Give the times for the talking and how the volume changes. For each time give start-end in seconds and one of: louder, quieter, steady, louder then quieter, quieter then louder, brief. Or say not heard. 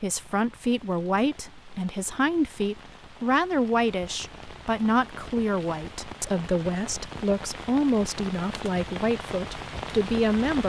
0.0-10.6 steady.